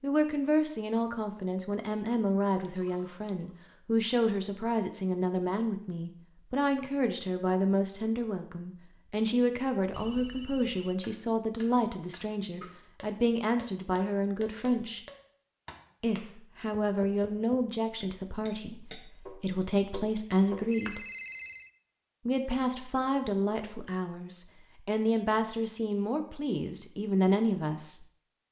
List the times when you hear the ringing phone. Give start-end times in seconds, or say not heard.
2.6-3.3, 9.9-10.9, 20.7-21.8.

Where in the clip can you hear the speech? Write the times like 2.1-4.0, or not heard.
0.0-15.0, 16.0-21.1, 22.2-28.1.